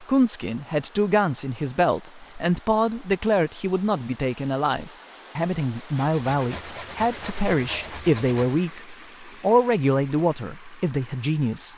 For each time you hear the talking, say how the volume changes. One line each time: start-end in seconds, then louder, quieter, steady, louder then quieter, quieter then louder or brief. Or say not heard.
0.0-11.7 steady.